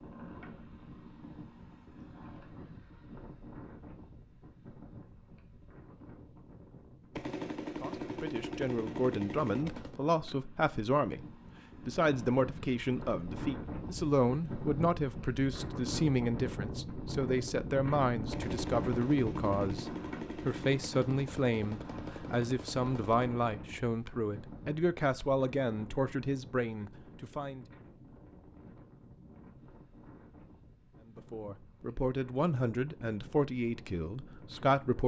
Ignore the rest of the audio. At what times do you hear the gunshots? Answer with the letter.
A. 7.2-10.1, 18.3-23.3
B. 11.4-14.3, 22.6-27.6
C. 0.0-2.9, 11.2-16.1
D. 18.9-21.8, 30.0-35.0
A.